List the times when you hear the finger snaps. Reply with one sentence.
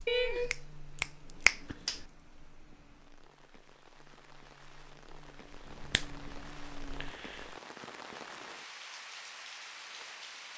You can hear the finger snaps from 0.1 to 2.0 s and from 5.7 to 7.5 s.